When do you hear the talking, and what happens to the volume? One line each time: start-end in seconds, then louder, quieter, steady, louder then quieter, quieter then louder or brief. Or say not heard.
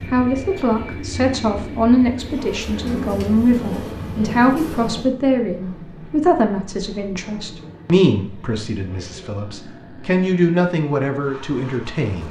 0.1-12.2 steady.